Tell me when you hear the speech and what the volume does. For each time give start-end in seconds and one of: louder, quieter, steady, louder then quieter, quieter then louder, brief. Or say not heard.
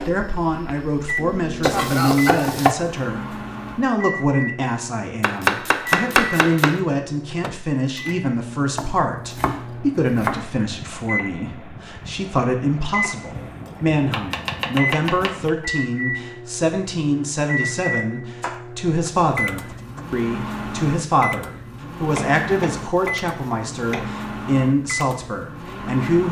0.0-26.2 steady.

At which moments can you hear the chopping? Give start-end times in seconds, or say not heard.
1.6-2.8, 5.2-6.8, 8.8-10.9, 13.3-15.5, 18.4-20.1, 22.1-24.1.